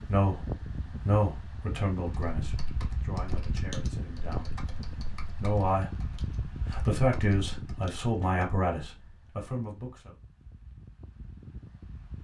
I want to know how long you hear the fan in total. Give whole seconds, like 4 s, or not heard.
12 s.